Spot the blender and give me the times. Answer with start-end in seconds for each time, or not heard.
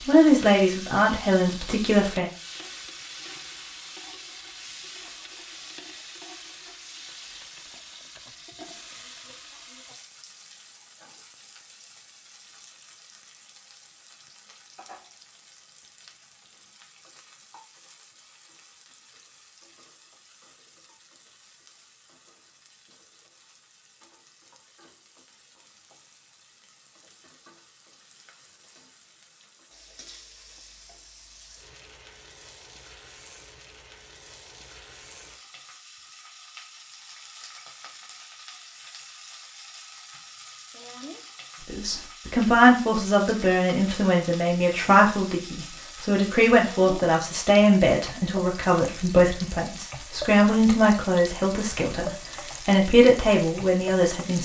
not heard.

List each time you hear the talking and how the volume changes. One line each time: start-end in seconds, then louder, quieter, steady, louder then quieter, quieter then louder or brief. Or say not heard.
0.1-2.3 brief
41.6-54.3 steady.